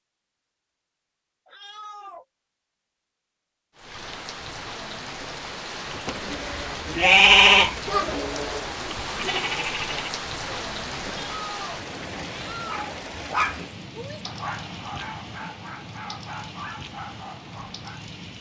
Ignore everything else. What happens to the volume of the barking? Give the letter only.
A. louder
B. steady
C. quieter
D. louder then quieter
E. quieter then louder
C.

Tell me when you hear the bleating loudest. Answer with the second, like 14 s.
7 s.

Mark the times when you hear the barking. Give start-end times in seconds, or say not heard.
12.7-18.1.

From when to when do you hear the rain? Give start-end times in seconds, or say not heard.
3.8-18.3.